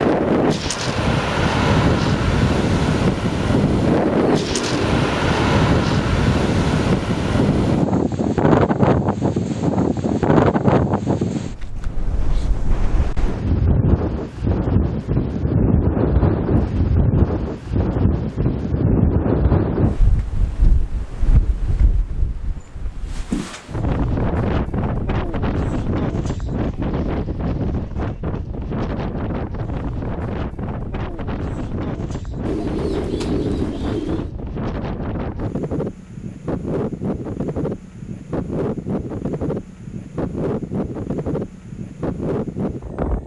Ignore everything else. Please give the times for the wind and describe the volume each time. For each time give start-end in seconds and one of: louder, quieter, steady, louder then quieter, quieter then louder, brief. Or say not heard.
0.0-43.2 quieter.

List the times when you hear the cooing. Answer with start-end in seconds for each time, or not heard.
3.9-5.4, 32.5-34.3.